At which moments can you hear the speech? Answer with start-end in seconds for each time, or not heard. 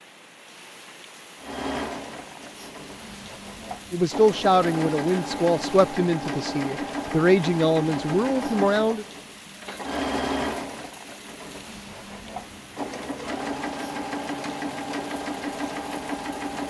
3.9-9.1.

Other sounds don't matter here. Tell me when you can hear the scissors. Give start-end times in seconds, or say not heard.
not heard.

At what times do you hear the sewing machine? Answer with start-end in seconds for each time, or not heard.
1.4-16.6.